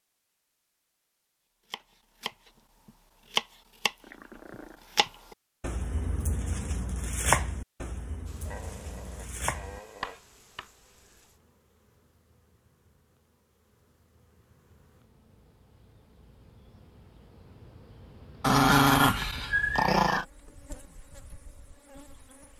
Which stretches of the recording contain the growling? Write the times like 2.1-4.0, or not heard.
4.0-4.8, 8.4-10.2, 18.4-20.2.